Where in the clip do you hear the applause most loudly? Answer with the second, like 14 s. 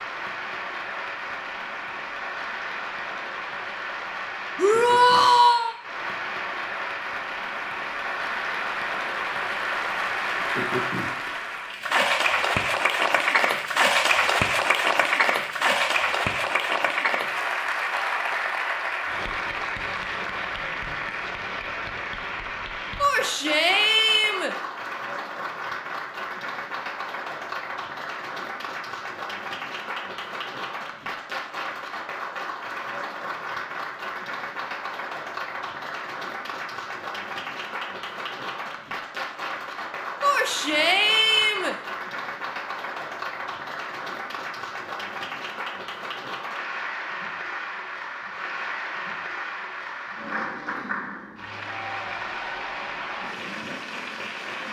14 s.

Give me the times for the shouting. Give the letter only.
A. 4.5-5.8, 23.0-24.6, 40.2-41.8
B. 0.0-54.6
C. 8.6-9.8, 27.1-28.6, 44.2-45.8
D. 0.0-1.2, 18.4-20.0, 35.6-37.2
A.